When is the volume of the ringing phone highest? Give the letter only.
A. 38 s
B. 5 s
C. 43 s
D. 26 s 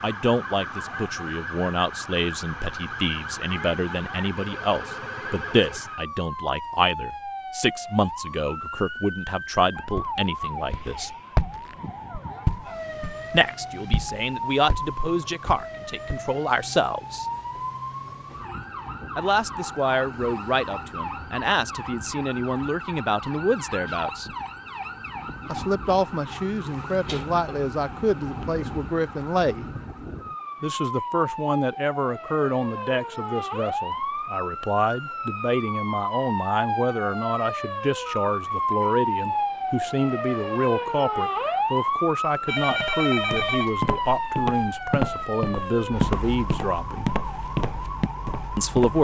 C.